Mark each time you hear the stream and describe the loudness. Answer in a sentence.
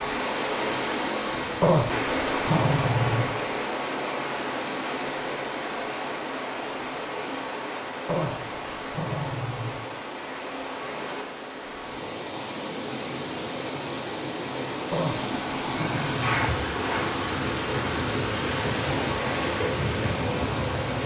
You can hear the stream from 0.0 to 21.0 s, getting quieter then louder.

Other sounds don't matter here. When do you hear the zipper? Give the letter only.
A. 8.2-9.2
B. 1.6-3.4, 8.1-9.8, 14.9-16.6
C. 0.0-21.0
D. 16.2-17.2
D.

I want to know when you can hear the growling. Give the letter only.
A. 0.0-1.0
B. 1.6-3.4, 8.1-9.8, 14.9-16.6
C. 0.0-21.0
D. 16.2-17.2
B.